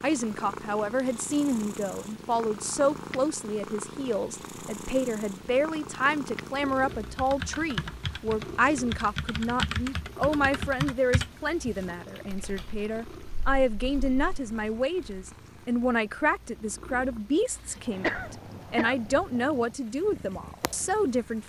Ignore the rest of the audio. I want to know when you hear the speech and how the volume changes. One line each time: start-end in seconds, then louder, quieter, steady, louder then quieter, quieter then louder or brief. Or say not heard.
0.0-21.4 steady.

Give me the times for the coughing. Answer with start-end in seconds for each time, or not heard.
18.0-19.3.